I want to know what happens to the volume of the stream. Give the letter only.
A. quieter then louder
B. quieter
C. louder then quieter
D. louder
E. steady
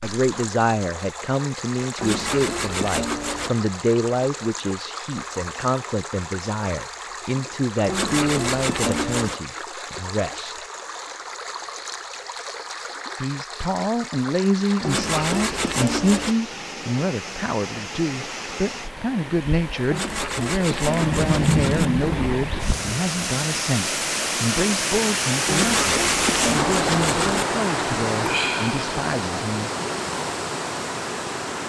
D.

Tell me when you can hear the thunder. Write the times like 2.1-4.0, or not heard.
21.0-22.9.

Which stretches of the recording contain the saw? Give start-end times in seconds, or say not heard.
1.9-3.5, 7.8-9.4, 14.8-16.4, 19.9-21.9, 25.4-27.4.